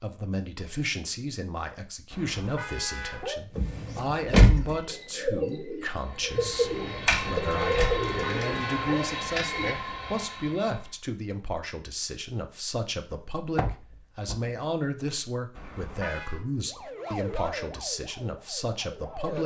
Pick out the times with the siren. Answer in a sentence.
The siren can be heard from 16.6 to 19.4 s.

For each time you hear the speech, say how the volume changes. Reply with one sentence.
You can hear the speech from 0.0 to 19.4 s, at a steady volume.